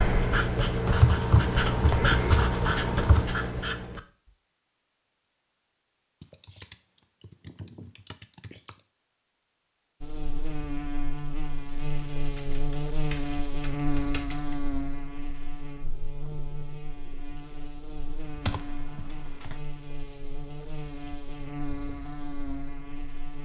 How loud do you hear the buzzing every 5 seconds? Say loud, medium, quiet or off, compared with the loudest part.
off, off, loud, medium, medium.